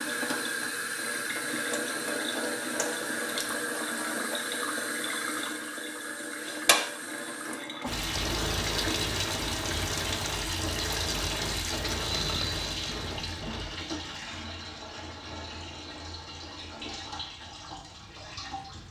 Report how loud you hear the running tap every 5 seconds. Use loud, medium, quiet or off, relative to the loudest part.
loud, loud, loud, medium.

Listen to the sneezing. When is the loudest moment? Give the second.
12 s.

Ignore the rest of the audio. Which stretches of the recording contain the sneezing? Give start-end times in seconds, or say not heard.
12.0-13.7.